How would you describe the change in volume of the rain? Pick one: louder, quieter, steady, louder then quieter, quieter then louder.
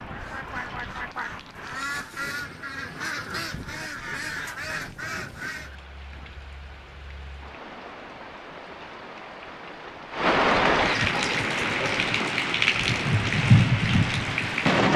louder.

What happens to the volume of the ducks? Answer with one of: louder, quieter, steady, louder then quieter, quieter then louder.
steady.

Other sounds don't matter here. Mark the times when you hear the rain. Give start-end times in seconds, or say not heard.
0.0-14.9.